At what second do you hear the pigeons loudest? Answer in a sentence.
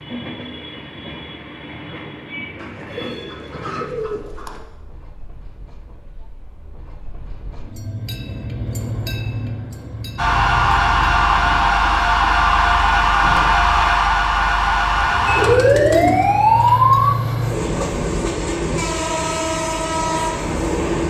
The volume of the pigeons peaks at 16 seconds.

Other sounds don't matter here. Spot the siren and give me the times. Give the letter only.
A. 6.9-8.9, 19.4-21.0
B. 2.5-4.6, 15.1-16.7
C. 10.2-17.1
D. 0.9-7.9
C.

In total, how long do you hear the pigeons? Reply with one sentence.
The pigeons can be heard for 4 seconds in total.